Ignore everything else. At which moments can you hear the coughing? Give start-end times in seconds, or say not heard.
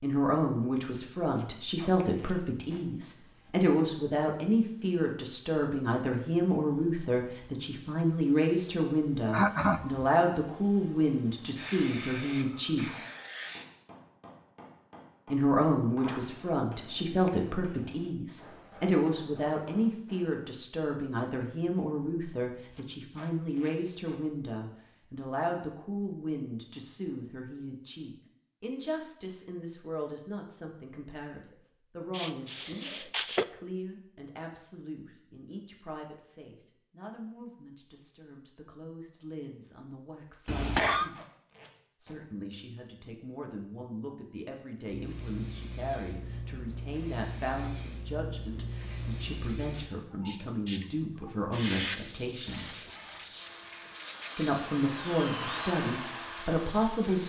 9.2-10.1, 32.1-33.5, 40.5-41.1.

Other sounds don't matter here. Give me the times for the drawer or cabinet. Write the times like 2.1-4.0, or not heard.
not heard.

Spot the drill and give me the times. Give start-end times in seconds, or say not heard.
52.3-57.2.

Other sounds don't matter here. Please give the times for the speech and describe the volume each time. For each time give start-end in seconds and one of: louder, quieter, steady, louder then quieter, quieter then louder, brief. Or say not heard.
0.0-12.8 steady
15.3-41.1 quieter
42.0-52.8 louder
54.4-57.2 brief.